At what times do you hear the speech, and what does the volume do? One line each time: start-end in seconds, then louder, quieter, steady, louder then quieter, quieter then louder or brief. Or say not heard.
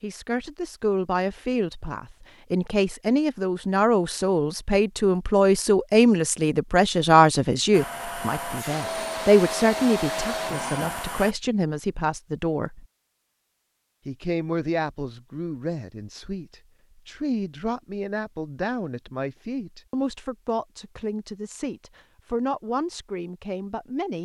0.0-12.8 louder then quieter
14.1-24.2 steady.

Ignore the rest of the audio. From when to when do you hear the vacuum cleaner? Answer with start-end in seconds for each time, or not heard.
7.7-11.3.